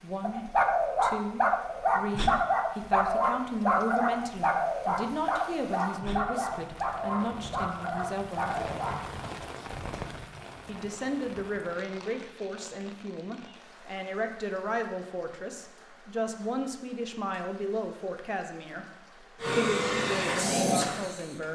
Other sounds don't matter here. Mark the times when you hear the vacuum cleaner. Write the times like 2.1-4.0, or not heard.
19.4-21.4.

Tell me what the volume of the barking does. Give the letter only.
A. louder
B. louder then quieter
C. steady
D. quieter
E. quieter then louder
D.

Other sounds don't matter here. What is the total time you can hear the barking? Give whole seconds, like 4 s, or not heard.
9 s.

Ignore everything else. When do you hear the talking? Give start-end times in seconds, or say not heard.
0.0-8.5, 10.7-18.9, 19.5-21.4.